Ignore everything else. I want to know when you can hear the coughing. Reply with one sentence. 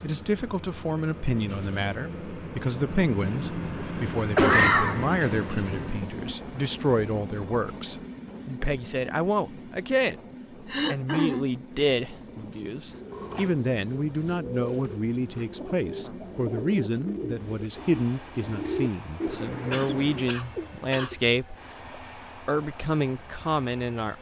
You can hear the coughing from 4.3 to 5.0 s, from 10.7 to 11.4 s and from 19.7 to 21.1 s.